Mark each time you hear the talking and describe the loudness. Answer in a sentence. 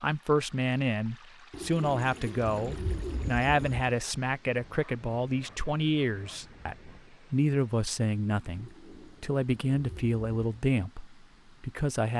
You can hear the talking from 0.0 to 12.1 s, at a steady volume.